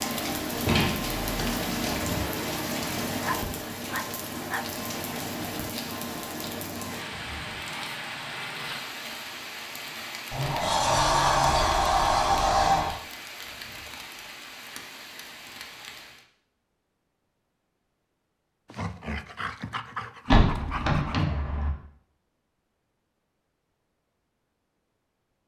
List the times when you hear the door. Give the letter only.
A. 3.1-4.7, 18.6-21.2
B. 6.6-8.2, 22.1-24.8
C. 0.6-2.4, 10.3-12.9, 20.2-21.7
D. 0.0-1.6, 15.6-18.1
C.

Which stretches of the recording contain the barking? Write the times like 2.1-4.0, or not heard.
3.1-4.7, 18.6-21.2.